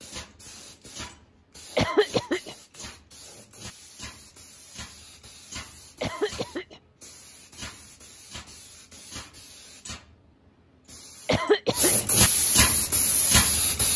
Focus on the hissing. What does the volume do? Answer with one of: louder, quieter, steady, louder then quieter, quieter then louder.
louder.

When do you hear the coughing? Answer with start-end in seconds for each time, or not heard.
1.8-2.5, 6.0-6.8, 11.2-12.1.